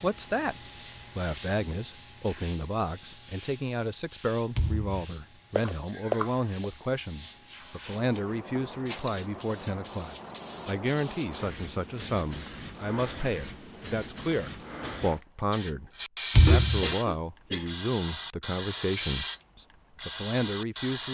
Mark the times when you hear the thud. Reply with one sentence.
The thud can be heard from 4.5 to 5.0 s and from 16.4 to 16.9 s.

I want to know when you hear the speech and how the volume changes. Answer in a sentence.
The speech can be heard briefly from 0.0 to 0.6 s; and from 1.1 to 21.0 s, at a steady volume.